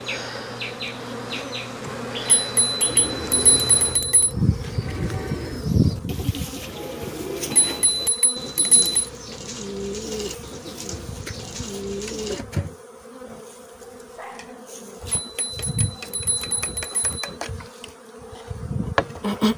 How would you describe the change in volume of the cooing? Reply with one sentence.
The loudness of the cooing stays about the same.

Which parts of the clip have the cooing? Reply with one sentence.
You can hear the cooing from 2.8 to 12.4 s.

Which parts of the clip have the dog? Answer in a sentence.
The dog can be heard from 13.7 to 14.6 s.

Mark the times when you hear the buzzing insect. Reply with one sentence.
You can hear the buzzing insect from 0.0 to 19.5 s.